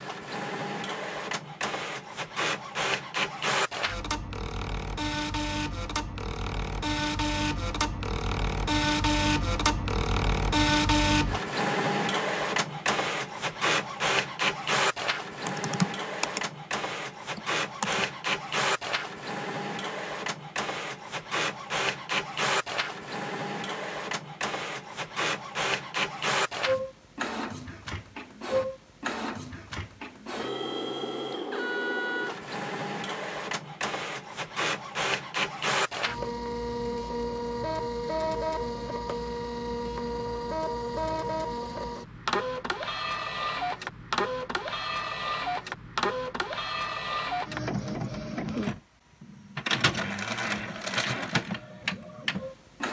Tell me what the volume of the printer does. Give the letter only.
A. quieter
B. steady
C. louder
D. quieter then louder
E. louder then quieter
B.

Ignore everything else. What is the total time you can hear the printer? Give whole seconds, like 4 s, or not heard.
53 s.